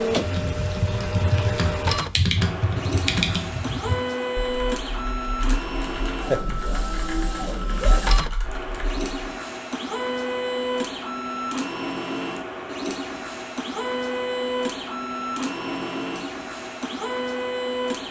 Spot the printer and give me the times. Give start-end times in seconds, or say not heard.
0.0-18.0.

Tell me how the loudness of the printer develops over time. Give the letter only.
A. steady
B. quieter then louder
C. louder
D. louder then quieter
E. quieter
A.